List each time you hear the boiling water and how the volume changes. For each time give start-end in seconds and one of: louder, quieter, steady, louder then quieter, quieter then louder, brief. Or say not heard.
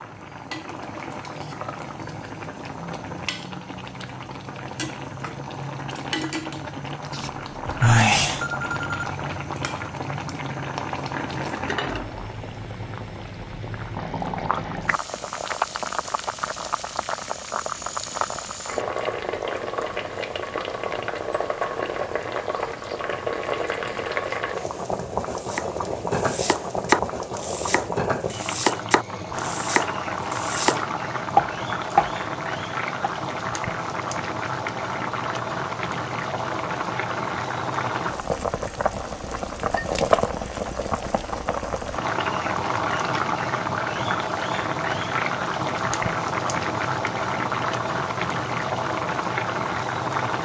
0.0-50.4 louder.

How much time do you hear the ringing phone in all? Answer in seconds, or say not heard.
2 s.